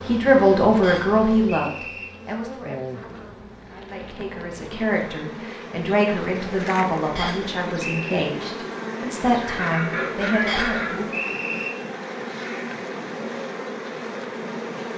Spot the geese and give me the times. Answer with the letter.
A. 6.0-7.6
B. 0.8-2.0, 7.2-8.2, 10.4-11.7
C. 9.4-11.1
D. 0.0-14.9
C.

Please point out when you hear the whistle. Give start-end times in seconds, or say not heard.
0.8-2.0, 7.2-8.2, 10.4-11.7.